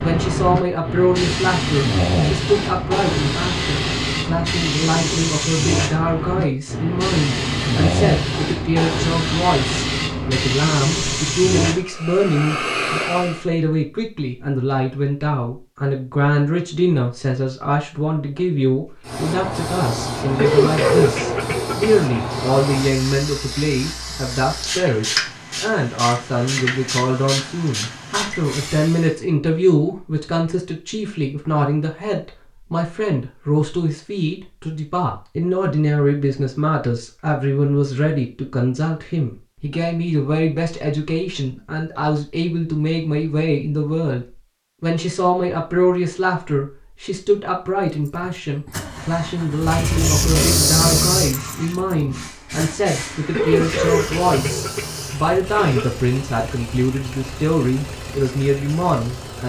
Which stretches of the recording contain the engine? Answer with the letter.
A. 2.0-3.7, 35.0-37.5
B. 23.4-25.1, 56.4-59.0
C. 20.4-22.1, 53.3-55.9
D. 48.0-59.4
D.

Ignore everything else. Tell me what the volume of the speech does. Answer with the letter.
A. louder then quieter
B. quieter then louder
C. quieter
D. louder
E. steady
E.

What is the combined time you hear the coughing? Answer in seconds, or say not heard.
4 s.